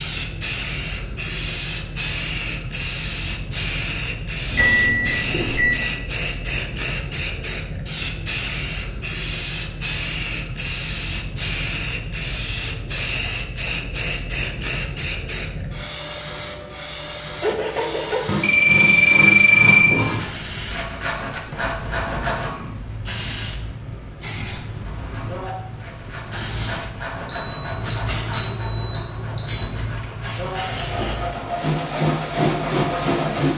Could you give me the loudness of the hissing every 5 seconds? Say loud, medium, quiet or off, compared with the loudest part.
loud, loud, loud, medium, medium, medium, loud.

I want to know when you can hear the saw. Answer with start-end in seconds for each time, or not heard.
17.4-22.5, 24.9-33.5.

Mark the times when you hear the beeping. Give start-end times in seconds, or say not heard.
4.5-5.8, 18.4-19.9, 27.2-29.6.